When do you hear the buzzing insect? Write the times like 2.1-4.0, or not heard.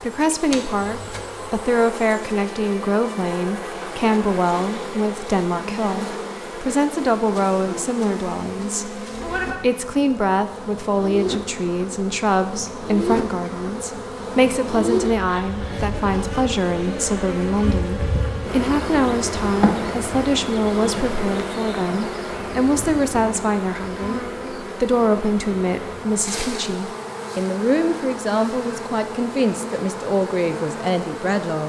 0.0-31.6.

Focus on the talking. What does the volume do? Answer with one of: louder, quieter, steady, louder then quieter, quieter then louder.
steady.